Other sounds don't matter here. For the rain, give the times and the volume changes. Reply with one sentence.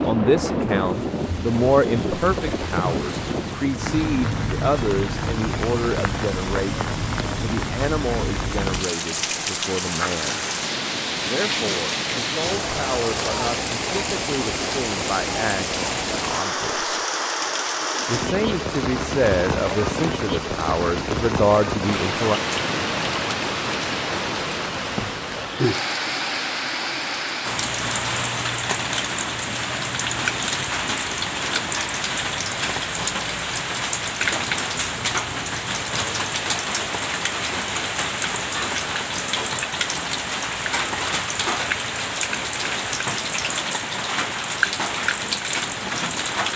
The rain can be heard from 0.0 to 46.5 s, at a steady volume.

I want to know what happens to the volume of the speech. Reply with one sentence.
The volume of the speech goes down, then up.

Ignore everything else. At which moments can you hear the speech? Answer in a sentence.
The speech can be heard from 0.0 to 10.4 s, from 11.2 to 17.0 s and from 18.1 to 22.4 s.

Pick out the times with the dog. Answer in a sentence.
You can't hear the dog here.